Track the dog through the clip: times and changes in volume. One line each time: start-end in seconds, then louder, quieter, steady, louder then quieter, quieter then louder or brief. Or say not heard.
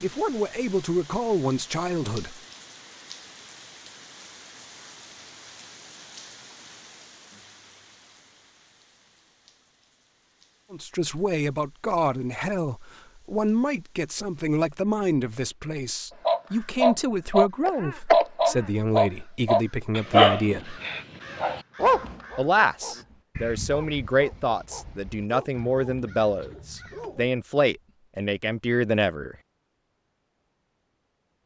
16.2-27.3 quieter.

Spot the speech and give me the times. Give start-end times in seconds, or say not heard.
0.0-2.4, 10.7-20.8, 22.4-29.4.